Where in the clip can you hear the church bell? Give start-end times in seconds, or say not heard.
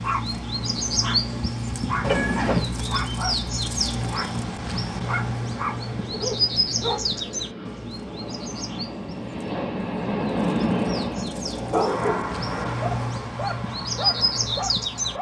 not heard.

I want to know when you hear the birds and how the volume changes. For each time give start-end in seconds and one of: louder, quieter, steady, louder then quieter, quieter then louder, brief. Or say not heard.
0.0-15.1 quieter then louder.